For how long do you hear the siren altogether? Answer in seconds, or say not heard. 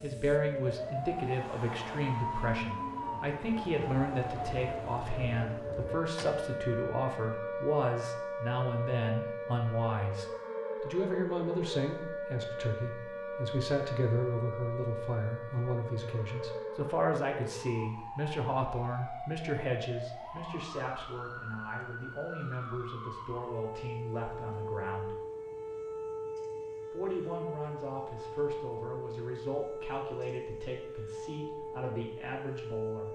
33 s.